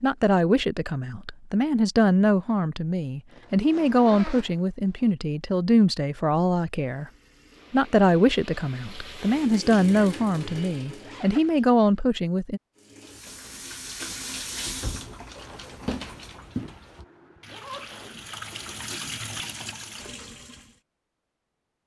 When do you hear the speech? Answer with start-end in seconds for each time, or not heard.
0.0-7.1, 7.7-12.6.